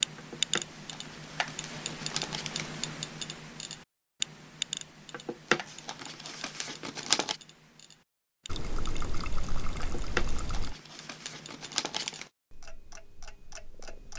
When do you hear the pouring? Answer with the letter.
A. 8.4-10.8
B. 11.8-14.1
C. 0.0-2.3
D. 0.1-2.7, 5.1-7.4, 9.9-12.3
A.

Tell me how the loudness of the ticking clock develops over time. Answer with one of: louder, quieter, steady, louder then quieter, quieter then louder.
quieter.